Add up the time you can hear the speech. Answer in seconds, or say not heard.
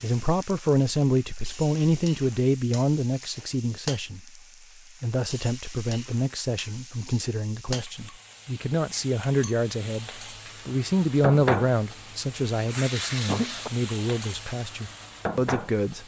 15 s.